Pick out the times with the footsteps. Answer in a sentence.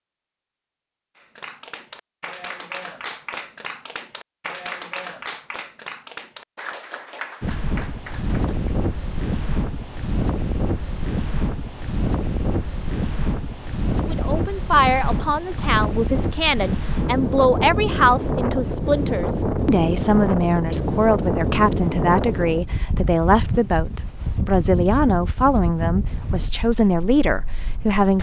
You can't hear the footsteps here.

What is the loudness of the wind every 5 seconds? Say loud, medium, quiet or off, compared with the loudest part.
off, loud, loud, loud, loud, medium.